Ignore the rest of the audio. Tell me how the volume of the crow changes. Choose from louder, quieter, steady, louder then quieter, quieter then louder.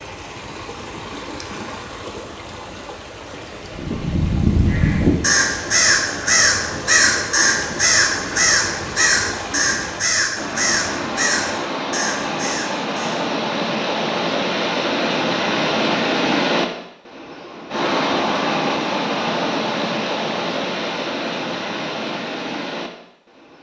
quieter.